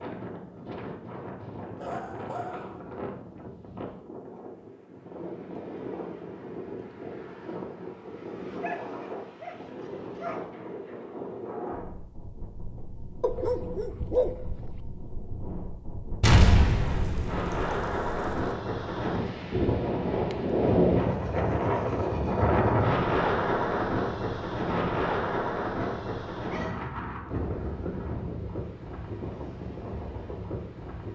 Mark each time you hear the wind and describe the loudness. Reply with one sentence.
You can hear the wind from 0.0 to 31.0 s, getting louder then quieter.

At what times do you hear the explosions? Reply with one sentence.
The explosions can be heard from 16.2 to 18.4 s.